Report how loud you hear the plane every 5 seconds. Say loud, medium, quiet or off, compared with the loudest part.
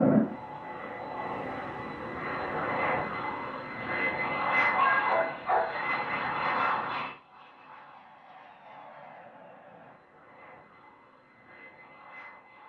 loud, medium, quiet.